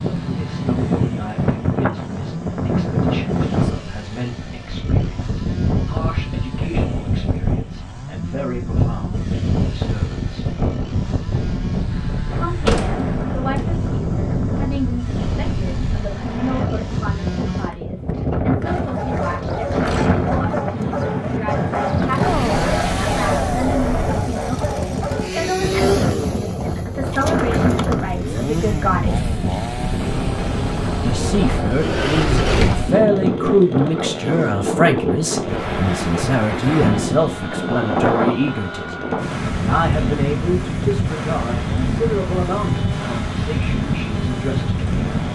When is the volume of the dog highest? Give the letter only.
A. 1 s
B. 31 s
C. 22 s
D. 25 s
C.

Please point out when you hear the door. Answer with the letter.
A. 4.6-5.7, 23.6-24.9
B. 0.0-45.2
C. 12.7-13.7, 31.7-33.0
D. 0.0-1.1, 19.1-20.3
C.